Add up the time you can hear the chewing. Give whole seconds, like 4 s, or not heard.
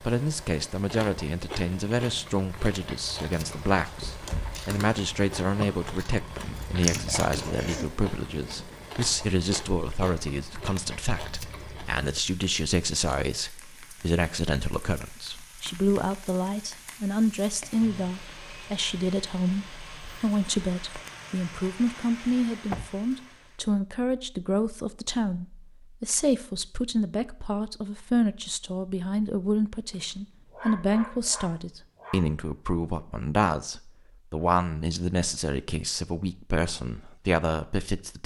11 s.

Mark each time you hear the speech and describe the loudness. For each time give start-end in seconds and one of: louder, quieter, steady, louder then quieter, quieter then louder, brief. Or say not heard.
0.1-38.2 steady.